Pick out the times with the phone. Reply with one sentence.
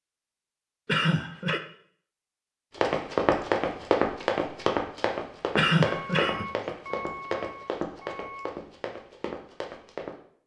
The phone can't be heard in this clip.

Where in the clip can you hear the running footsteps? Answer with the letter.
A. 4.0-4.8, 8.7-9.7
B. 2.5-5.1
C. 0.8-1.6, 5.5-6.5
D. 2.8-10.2
D.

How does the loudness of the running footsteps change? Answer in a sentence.
The loudness of the running footsteps goes down.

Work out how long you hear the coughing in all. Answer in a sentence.
You can hear the coughing for 2 seconds altogether.